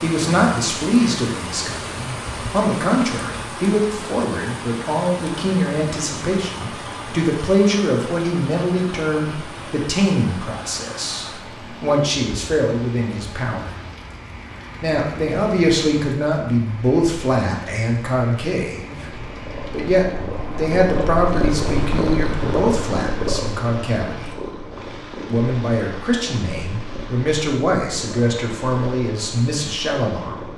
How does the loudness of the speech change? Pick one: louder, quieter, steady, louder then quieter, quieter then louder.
steady.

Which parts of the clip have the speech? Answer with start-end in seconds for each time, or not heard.
0.0-13.7, 14.8-24.4, 25.3-30.5.